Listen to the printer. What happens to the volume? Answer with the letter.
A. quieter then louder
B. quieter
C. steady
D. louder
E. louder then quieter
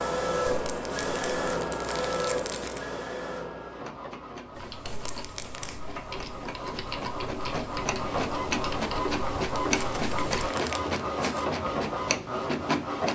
A.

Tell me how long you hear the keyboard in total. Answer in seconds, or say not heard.
6 s.